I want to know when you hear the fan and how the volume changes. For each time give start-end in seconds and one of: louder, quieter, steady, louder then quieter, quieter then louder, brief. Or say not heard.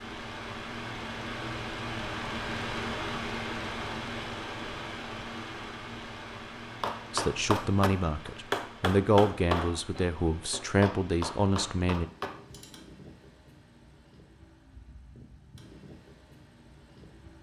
0.0-17.3 quieter.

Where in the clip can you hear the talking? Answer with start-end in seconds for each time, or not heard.
7.1-12.1.